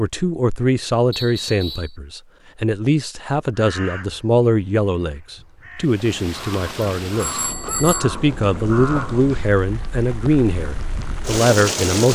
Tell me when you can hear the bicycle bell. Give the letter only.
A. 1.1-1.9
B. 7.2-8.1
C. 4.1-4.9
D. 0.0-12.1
B.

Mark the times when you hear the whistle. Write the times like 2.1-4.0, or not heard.
1.1-1.9.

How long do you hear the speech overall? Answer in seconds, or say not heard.
12 s.